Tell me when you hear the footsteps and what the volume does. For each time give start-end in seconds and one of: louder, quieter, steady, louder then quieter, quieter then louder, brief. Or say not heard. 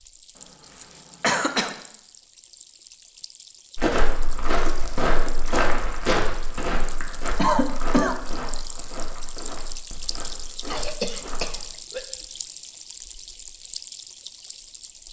3.8-11.7 quieter.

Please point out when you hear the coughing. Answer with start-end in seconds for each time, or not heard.
0.8-1.8, 7.3-8.2, 10.7-12.0.